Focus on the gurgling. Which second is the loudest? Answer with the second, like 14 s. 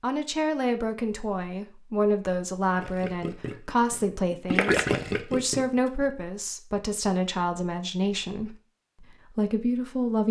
5 s.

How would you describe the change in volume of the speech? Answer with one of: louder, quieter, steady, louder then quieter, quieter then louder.
steady.